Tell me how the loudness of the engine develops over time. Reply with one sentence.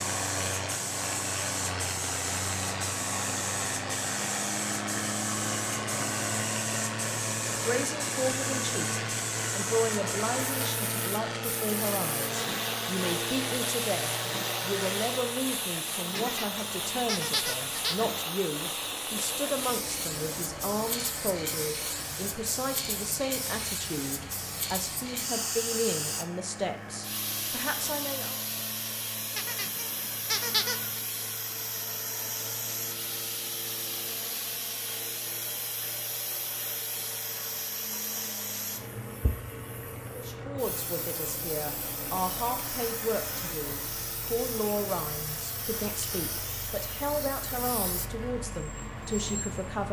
The loudness of the engine goes down.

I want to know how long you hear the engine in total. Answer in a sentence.
You can hear the engine for 50 seconds altogether.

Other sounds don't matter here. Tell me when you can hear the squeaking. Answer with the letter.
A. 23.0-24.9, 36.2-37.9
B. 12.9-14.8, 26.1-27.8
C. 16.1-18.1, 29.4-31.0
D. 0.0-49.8
C.